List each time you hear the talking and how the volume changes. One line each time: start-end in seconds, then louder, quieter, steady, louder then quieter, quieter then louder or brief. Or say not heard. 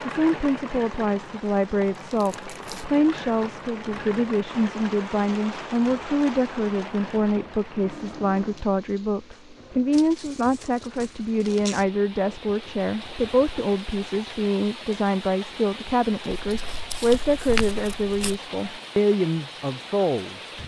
0.1-20.4 steady.